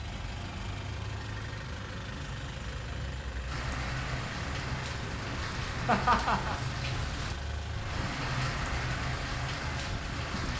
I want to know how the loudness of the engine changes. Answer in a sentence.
The volume of the engine stays about the same.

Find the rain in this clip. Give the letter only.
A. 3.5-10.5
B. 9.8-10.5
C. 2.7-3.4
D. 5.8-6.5
A.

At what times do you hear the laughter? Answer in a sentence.
You can hear the laughter from 5.8 to 6.5 s.